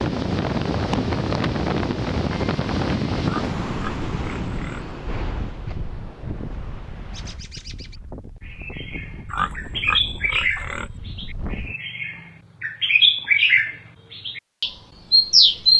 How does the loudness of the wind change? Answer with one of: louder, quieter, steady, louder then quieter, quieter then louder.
quieter.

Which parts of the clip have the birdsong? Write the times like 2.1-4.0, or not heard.
7.1-15.7.